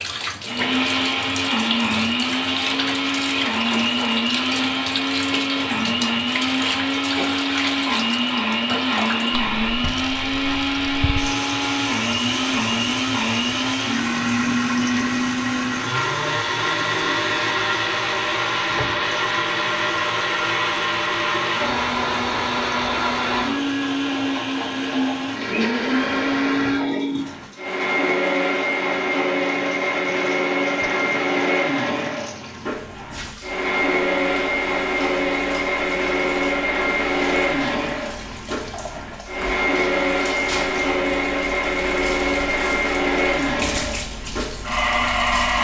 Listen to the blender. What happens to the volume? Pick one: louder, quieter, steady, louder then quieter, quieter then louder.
steady.